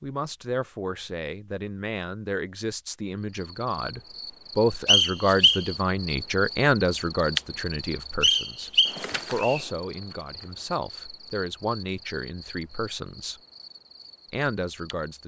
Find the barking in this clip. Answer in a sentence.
The barking can't be heard in this clip.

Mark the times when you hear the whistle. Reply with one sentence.
The whistle can be heard from 4.8 to 5.7 s and from 8.2 to 9.7 s.